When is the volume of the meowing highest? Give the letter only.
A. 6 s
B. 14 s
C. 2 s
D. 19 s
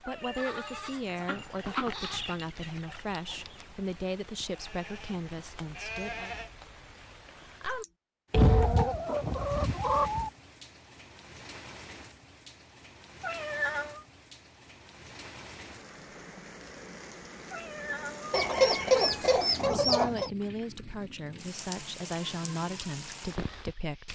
B.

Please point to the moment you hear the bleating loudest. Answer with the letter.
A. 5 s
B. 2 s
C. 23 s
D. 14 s
B.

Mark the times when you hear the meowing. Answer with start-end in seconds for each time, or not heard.
0.0-0.8, 13.2-14.1, 17.5-18.4.